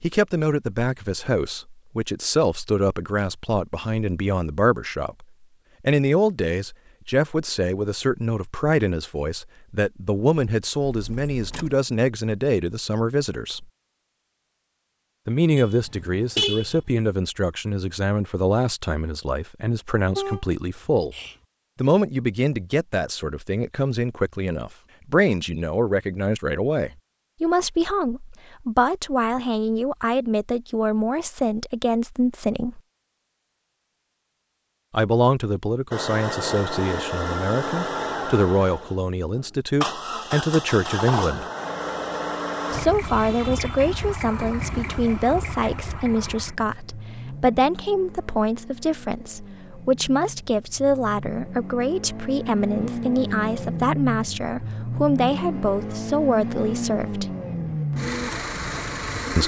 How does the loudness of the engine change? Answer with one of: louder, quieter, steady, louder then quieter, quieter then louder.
quieter then louder.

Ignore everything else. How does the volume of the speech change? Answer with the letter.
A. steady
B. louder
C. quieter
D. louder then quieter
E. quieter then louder
A.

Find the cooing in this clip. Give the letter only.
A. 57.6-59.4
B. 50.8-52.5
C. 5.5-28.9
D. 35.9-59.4
A.